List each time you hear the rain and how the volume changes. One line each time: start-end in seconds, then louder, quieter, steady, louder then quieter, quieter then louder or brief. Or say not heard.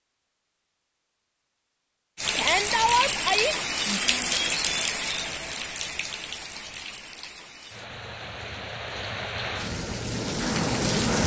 2.1-11.2 quieter then louder.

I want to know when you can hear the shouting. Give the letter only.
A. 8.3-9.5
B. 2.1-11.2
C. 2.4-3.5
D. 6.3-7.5
C.